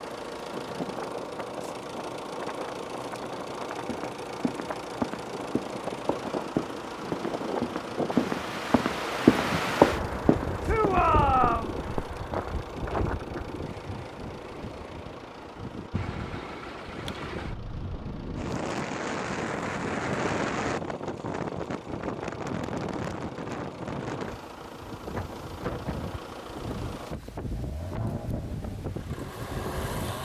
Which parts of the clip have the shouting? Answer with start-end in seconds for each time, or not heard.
10.7-11.8.